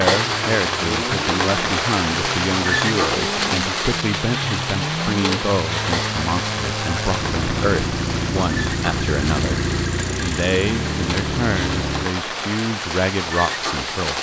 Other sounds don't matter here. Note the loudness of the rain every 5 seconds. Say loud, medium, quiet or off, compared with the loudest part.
loud, medium, medium.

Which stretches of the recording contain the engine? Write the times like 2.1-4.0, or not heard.
0.1-12.1.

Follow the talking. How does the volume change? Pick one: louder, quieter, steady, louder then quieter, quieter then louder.
steady.